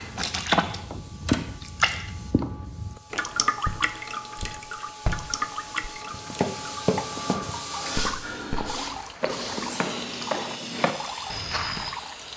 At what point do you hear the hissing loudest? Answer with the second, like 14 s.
8 s.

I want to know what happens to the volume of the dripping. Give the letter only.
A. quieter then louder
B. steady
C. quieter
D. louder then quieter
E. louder
C.